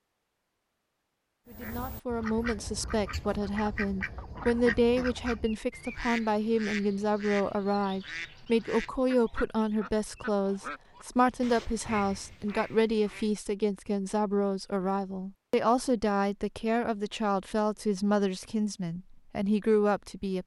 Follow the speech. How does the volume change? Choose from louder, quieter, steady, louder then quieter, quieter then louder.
steady.